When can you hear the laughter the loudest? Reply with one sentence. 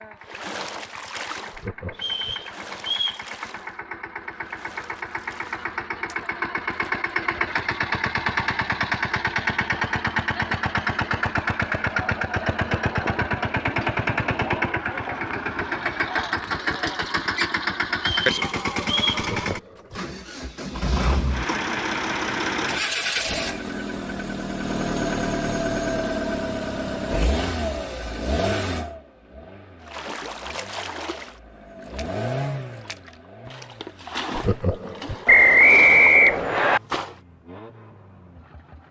The volume of the laughter peaks at 35 seconds.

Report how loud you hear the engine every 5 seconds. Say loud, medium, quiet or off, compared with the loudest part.
quiet, loud, loud, loud, loud, loud, medium, quiet.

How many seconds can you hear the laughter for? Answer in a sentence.
The laughter can be heard for 3 seconds in total.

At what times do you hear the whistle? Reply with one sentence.
The whistle can be heard from 1.9 to 3.2 s, from 17.9 to 19.2 s and from 35.2 to 36.8 s.